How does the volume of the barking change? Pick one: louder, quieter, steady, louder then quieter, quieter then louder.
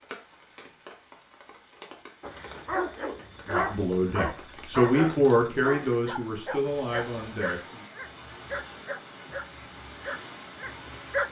quieter.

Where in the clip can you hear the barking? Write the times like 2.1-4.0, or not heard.
2.2-11.2.